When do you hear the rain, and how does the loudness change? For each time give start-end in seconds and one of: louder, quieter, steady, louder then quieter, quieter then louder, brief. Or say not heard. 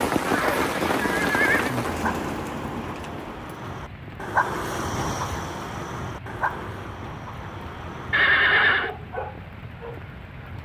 0.0-10.6 quieter.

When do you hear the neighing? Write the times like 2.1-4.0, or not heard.
0.2-1.8, 8.1-8.9.